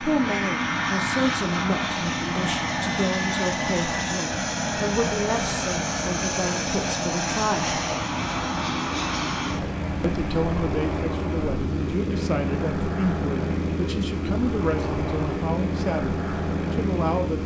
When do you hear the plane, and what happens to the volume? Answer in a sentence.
You can hear the plane from 0.0 to 17.4 s, at a steady volume.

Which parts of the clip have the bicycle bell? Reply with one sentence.
The bicycle bell can't be heard in this clip.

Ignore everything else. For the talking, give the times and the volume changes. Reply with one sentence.
The talking can be heard from 0.0 to 7.8 s, at a steady volume; and from 10.0 to 17.4 s, at a steady volume.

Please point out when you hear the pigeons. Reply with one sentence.
The pigeons can't be heard in this clip.